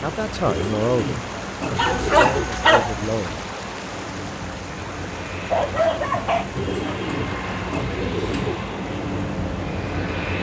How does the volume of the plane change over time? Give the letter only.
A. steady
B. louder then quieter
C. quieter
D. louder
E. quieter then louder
D.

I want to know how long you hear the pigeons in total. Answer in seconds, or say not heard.
4 s.